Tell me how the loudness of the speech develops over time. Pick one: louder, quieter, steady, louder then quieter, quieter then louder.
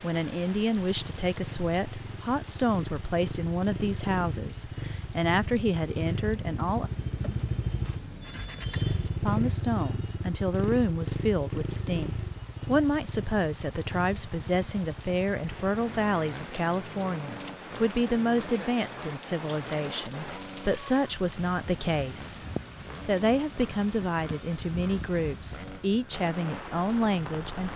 steady.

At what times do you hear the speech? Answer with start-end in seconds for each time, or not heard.
0.0-6.9, 9.2-22.4, 23.1-27.7.